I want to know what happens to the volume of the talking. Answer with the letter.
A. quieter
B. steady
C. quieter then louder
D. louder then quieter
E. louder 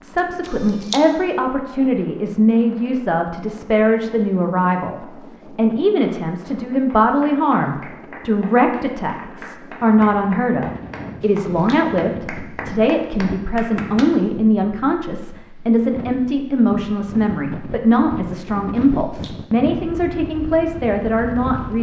B.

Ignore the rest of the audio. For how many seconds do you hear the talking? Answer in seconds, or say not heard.
22 s.